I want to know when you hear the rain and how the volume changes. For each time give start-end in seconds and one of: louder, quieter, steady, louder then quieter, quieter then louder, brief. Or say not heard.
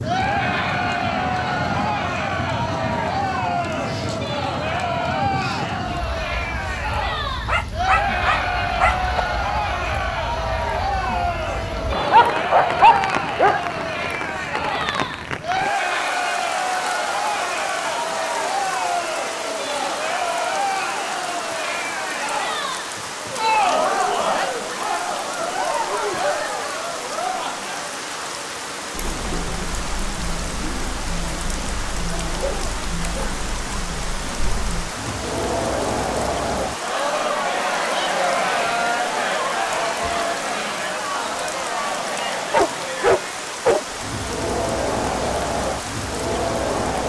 0.0-47.0 steady.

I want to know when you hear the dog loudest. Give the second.
13 s.